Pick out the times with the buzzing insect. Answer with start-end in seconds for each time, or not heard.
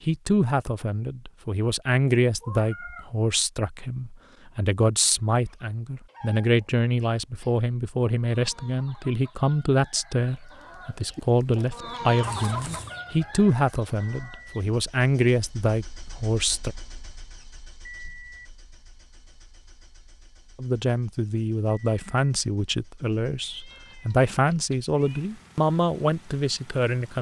not heard.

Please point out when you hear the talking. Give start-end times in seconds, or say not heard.
0.1-16.8, 20.6-27.1.